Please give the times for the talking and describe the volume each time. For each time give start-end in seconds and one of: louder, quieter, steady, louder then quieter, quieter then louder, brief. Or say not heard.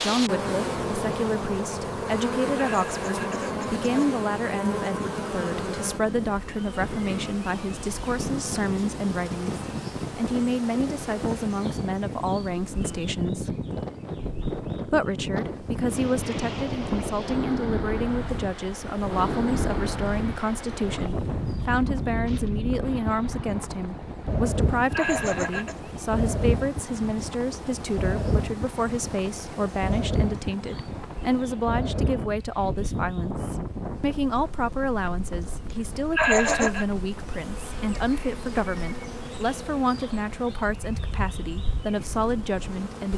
0.0-13.5 steady
14.9-43.1 steady.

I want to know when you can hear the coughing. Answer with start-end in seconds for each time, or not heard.
2.5-4.0, 24.9-25.8, 36.1-36.9.